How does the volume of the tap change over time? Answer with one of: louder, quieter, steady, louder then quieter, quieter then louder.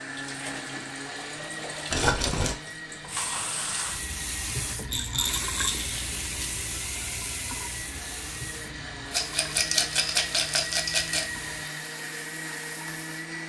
louder then quieter.